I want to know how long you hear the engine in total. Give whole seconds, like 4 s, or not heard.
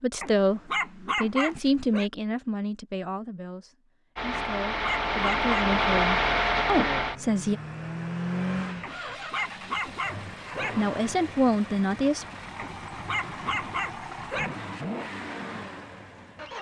12 s.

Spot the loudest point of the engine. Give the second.
6 s.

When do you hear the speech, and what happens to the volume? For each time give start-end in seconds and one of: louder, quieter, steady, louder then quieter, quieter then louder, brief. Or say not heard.
0.0-7.6 quieter then louder
10.8-12.2 brief.